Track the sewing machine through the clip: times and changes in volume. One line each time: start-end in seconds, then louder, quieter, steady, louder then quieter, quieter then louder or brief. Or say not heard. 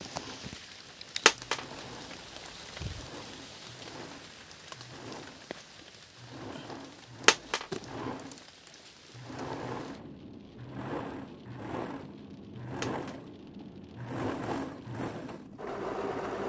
0.0-16.4 louder.